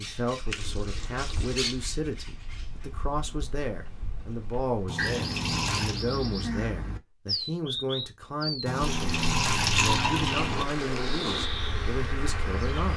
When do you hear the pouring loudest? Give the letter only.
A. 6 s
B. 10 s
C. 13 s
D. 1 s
B.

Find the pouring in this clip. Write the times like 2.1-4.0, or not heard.
0.5-1.8, 4.8-6.0, 8.7-10.7.